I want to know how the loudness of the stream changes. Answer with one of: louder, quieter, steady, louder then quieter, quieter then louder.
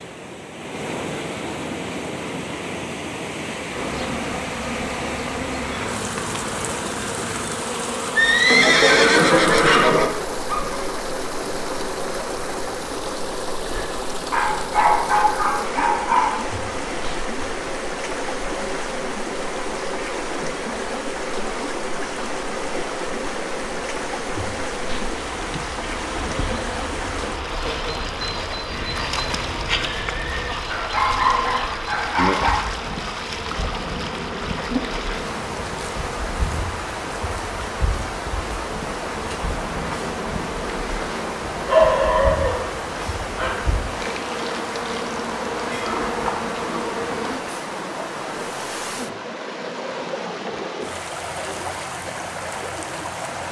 steady.